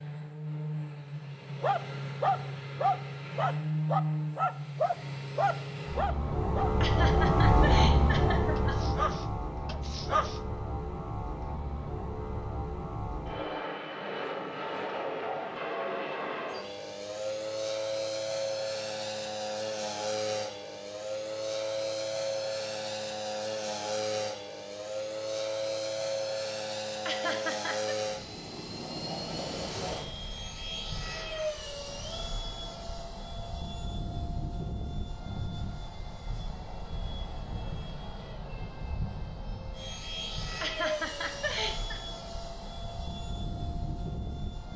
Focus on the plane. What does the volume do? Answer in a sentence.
The loudness of the plane goes down.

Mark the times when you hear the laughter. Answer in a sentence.
The laughter can be heard from 6.8 to 8.9 s, from 27.1 to 27.9 s and from 40.6 to 42.0 s.